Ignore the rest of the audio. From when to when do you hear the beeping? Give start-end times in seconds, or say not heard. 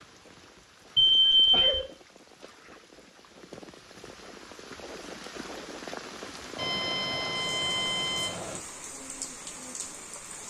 0.9-1.9, 6.5-8.6.